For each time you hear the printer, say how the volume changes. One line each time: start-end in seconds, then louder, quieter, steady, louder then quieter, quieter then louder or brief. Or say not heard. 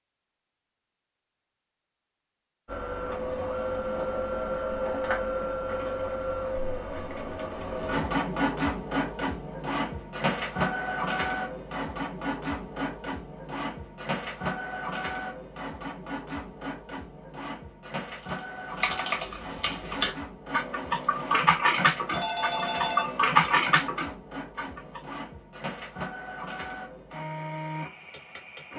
2.6-28.7 quieter.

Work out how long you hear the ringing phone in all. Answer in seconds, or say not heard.
3 s.